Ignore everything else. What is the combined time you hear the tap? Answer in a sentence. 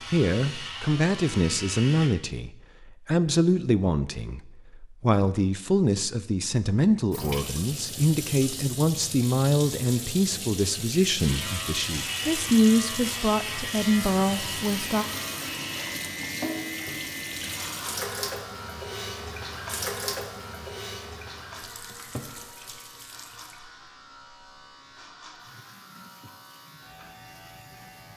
The tap can be heard for 21 seconds in total.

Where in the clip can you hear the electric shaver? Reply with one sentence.
The electric shaver can be heard from 0.0 to 2.1 s and from 11.2 to 28.1 s.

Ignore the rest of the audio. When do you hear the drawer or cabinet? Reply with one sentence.
You can hear the drawer or cabinet from 21.9 to 22.4 s.